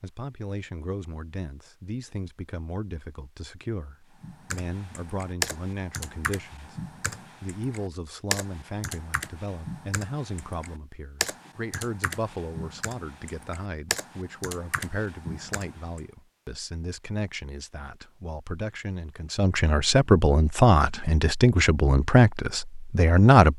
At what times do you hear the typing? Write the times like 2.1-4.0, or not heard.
4.2-16.0.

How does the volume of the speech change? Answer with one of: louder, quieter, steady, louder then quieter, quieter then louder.
louder.